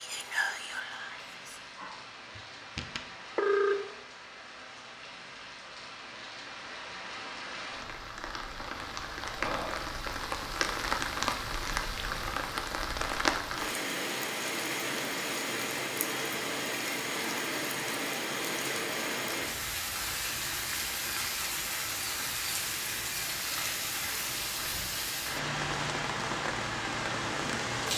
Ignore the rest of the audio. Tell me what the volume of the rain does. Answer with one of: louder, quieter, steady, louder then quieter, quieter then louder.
louder.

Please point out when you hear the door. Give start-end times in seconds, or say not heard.
not heard.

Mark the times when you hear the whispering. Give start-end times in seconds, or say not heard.
0.0-1.6.